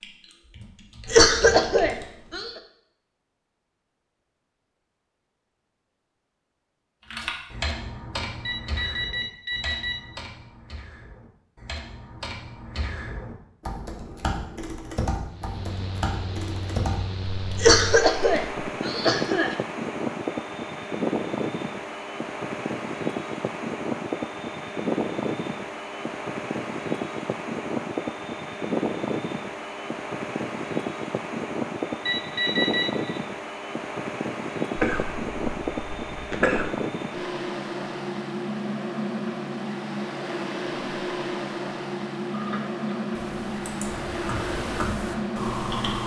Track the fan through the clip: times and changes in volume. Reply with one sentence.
You can hear the fan from 15.3 to 46.0 s, at a steady volume.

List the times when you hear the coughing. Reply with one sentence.
You can hear the coughing from 1.1 to 2.5 s, from 17.6 to 19.6 s and from 34.8 to 36.7 s.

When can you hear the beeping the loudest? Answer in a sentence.
The loudest moment of the beeping is at 33 seconds.